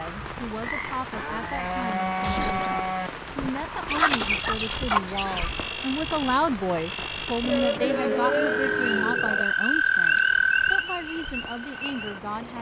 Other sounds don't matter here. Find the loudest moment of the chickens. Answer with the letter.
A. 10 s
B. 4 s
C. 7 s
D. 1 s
B.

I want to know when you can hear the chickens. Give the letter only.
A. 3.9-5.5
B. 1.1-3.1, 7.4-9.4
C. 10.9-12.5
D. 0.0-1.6
A.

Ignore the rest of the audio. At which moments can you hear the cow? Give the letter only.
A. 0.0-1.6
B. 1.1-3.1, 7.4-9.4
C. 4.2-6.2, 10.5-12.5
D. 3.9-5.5
B.